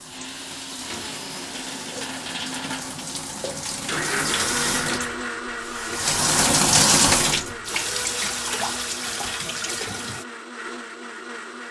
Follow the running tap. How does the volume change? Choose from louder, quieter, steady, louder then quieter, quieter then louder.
louder then quieter.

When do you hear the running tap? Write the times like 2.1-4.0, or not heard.
0.0-10.2.